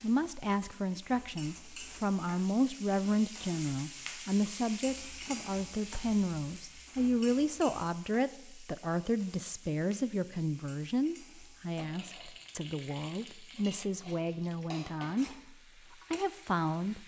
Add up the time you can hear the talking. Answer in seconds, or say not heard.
17 s.